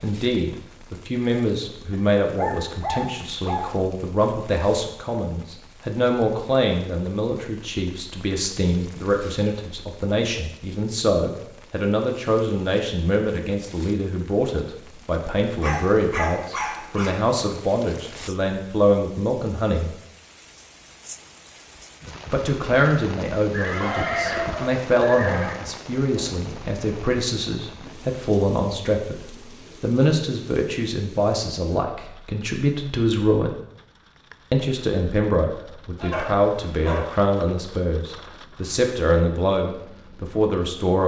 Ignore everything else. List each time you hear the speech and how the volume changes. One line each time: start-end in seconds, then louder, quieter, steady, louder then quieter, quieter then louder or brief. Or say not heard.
0.0-19.9 steady
22.3-33.5 steady
34.5-41.0 steady.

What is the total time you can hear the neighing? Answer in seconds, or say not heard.
2 s.